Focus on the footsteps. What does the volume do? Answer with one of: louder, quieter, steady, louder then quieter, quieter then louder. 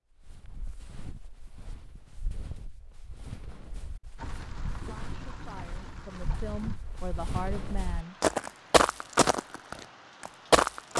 louder.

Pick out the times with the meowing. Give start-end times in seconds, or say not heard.
not heard.